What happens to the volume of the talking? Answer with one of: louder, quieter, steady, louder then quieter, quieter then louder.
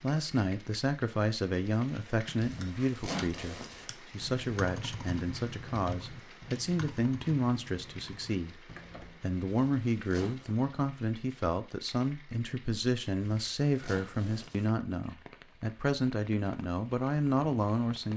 steady.